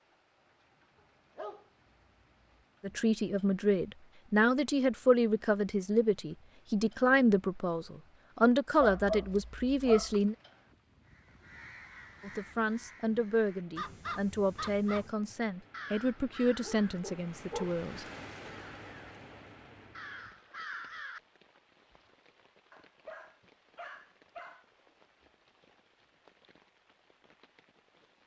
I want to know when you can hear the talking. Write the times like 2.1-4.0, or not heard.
2.8-10.3, 12.2-18.1.